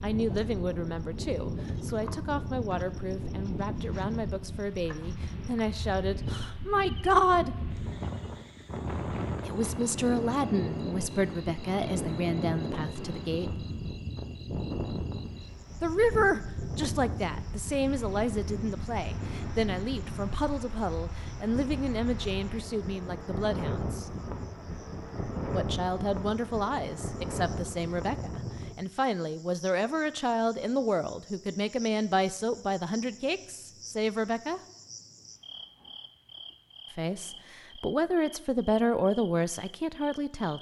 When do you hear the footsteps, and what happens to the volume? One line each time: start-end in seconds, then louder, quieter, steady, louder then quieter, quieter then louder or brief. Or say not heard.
not heard.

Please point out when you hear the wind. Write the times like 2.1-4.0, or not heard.
0.0-28.8.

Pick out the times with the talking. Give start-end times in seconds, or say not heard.
0.0-7.5, 9.4-13.7, 15.8-24.1, 25.5-34.6, 37.0-40.5.